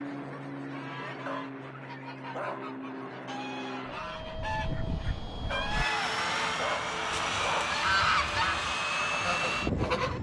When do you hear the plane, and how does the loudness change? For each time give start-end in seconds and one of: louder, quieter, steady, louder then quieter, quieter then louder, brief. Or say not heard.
0.0-10.1 louder.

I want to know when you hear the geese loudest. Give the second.
8 s.